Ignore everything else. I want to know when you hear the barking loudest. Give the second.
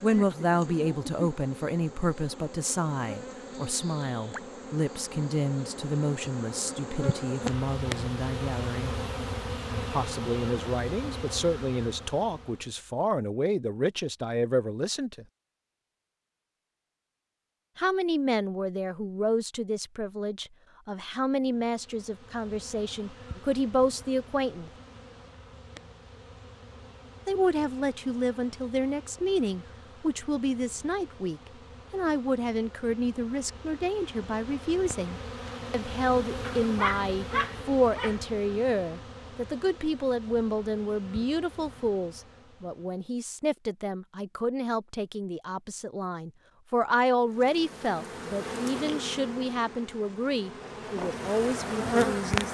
37 s.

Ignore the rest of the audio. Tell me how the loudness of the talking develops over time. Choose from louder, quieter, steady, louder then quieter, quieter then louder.
steady.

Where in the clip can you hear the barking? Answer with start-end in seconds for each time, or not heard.
36.4-38.2.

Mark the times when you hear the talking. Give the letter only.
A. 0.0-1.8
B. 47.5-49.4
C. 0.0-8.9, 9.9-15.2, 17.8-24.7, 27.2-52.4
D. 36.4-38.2
C.